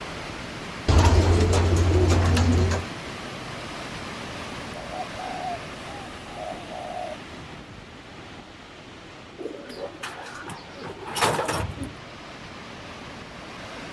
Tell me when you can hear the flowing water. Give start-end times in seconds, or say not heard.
0.0-13.8.